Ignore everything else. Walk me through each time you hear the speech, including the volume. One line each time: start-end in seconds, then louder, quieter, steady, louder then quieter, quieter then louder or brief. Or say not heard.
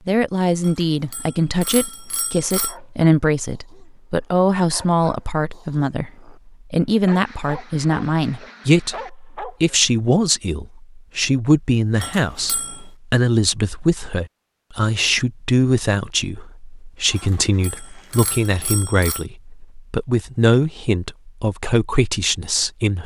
0.1-23.0 steady.